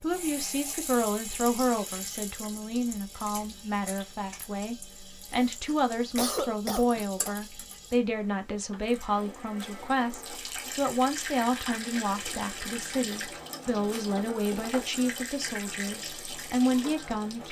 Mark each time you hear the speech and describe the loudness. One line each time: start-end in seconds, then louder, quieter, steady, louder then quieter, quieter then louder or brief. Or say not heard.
0.0-17.4 steady.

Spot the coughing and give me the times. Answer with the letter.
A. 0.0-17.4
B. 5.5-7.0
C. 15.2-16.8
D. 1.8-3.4
B.